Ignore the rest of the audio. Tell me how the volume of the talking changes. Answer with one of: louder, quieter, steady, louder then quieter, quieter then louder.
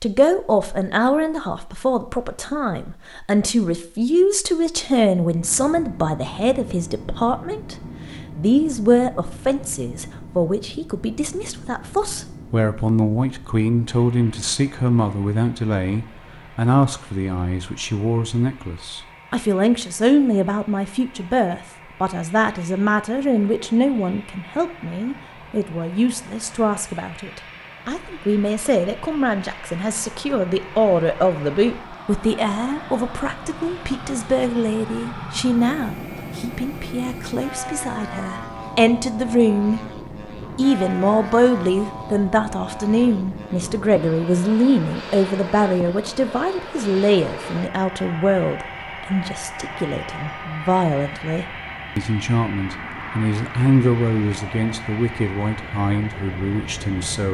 steady.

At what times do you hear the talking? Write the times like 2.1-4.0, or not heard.
0.0-39.8, 40.5-57.2.